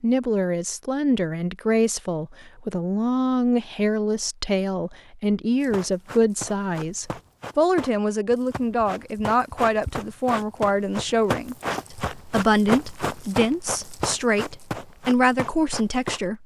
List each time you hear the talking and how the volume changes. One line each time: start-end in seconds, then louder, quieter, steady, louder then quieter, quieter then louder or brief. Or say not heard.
0.0-16.4 steady.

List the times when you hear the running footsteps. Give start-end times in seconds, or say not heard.
5.6-16.2.